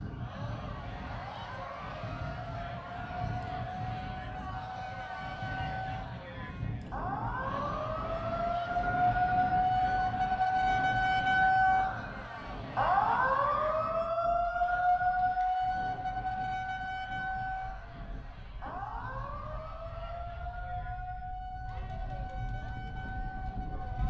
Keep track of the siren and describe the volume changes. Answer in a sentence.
The volume of the siren goes up, then down.